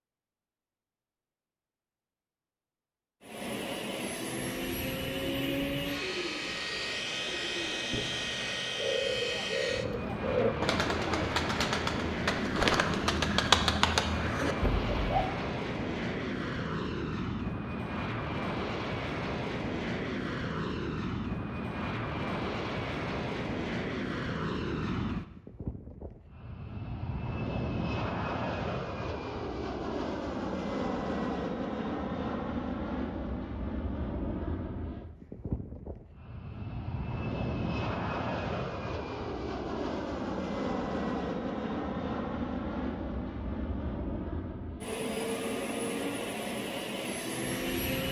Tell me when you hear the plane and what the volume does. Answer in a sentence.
The plane can be heard from 3.2 to 48.0 s, at a steady volume.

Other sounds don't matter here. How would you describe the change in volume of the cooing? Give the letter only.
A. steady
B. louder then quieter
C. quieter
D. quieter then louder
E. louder
E.